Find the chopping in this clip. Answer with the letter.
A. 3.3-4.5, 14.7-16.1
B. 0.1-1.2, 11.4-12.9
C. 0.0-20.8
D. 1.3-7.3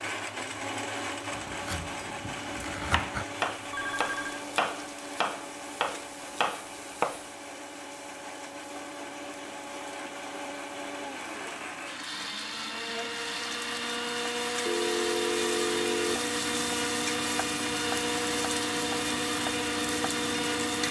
D.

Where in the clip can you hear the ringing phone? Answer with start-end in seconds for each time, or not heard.
3.3-4.5, 14.7-16.1.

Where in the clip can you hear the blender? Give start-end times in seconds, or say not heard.
0.0-20.8.